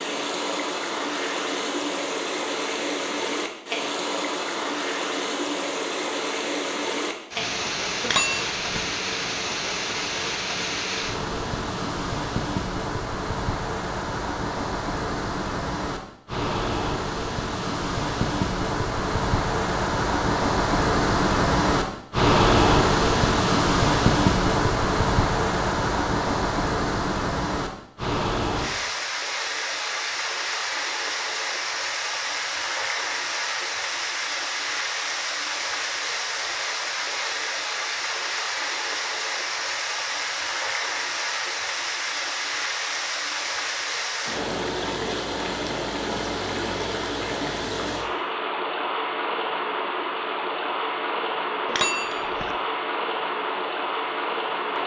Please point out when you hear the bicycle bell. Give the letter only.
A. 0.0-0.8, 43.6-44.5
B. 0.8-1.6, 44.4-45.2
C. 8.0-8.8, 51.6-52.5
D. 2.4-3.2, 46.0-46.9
C.